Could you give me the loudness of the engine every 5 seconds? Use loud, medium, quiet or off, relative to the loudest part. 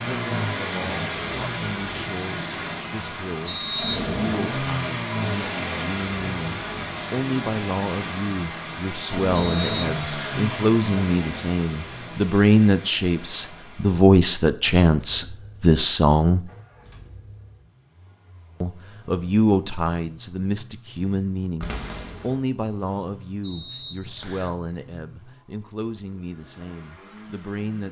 loud, loud, medium, quiet, quiet, quiet.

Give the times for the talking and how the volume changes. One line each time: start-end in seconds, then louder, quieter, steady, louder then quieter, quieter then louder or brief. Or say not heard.
0.1-16.5 louder
18.6-27.8 quieter.